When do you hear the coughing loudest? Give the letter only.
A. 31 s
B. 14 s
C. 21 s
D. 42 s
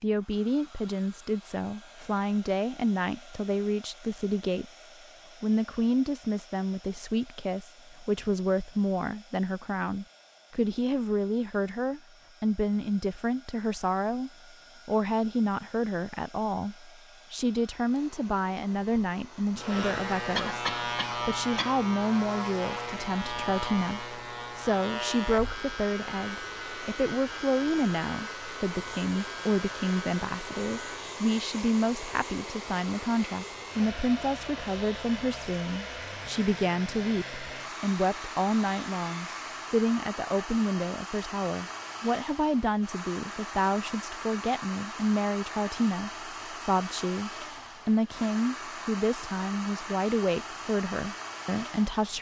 C.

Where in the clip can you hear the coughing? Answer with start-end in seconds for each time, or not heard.
20.4-21.8.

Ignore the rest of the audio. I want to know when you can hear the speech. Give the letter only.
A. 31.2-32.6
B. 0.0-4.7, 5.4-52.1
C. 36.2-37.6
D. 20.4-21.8
B.